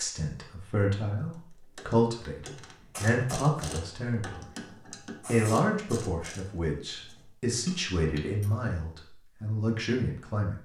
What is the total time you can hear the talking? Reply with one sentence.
The talking can be heard for 10 seconds in total.